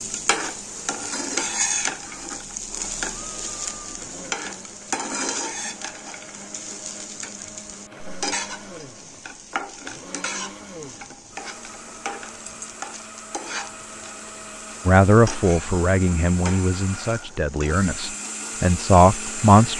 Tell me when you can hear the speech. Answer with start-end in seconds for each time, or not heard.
14.8-19.7.